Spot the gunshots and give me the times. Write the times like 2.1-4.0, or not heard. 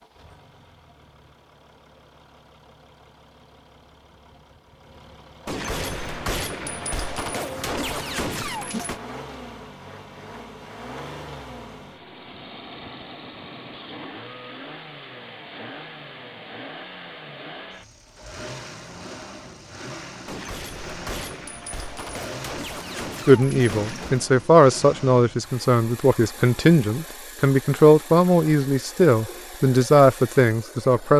5.5-9.0, 20.2-24.2.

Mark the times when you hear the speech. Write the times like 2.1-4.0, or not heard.
23.2-31.1.